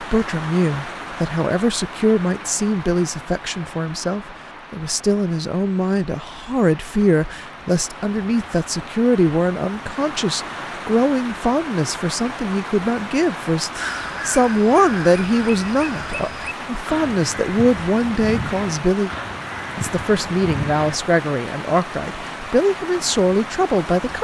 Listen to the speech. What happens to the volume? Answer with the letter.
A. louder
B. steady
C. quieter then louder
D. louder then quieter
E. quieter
B.